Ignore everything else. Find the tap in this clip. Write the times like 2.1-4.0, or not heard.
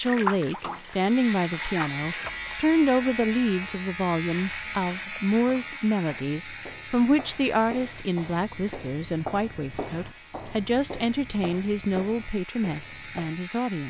0.0-2.3.